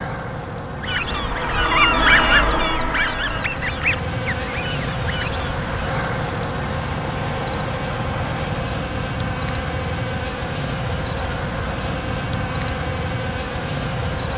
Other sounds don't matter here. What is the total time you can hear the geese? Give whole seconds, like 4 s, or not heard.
5 s.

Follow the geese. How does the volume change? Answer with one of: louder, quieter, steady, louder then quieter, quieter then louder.
quieter.